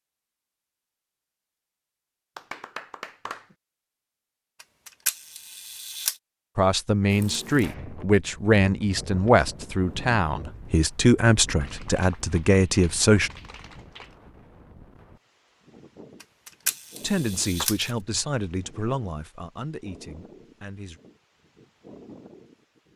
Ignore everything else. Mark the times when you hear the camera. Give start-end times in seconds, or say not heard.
4.6-6.2, 16.2-17.9.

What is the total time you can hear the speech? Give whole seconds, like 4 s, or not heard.
11 s.